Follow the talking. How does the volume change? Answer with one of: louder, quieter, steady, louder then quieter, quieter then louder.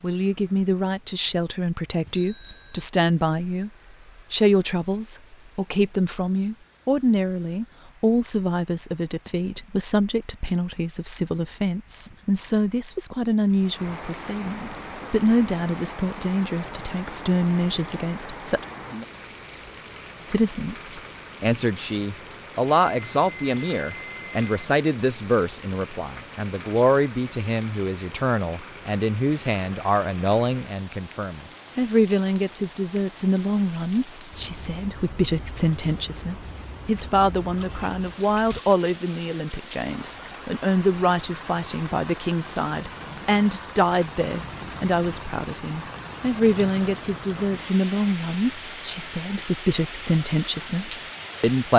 steady.